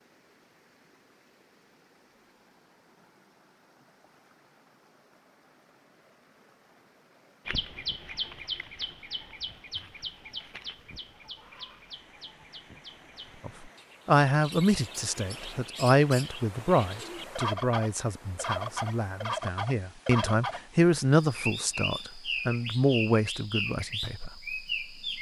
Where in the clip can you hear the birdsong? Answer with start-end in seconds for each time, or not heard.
7.5-25.1.